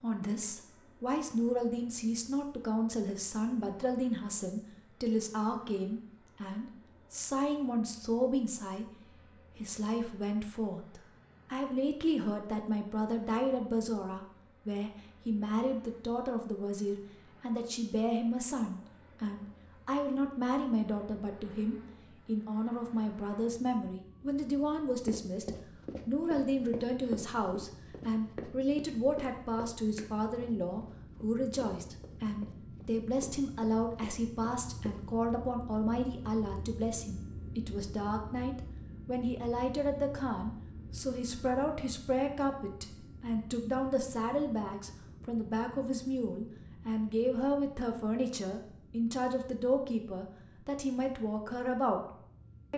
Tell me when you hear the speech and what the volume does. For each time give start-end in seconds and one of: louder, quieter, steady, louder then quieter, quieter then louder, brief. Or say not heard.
0.0-52.0 steady.